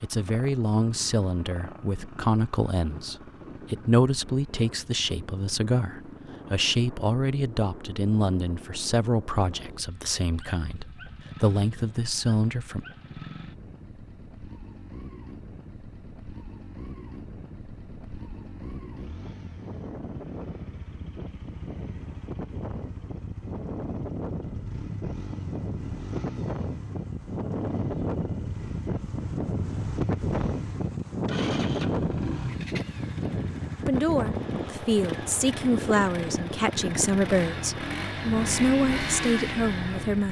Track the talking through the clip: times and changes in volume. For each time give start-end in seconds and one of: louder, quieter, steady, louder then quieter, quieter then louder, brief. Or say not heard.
0.0-12.8 steady
33.8-40.2 steady.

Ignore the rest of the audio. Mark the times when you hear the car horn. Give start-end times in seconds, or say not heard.
not heard.